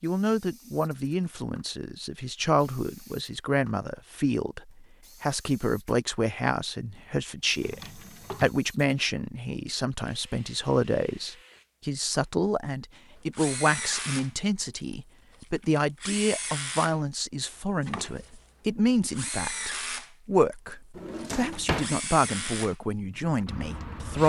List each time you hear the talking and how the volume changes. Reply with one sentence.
The talking can be heard from 0.0 to 24.2 s, at a steady volume.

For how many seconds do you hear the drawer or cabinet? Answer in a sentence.
You can hear the drawer or cabinet for 2 seconds altogether.